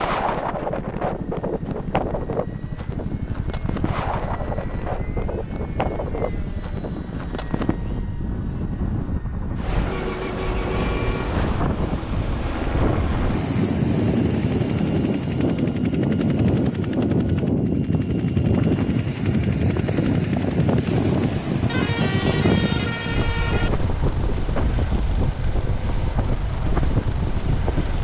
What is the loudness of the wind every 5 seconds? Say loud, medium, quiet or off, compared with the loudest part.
medium, medium, loud, loud, loud, medium.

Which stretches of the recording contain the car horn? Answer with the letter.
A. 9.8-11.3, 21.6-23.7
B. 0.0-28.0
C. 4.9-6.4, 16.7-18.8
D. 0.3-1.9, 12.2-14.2
A.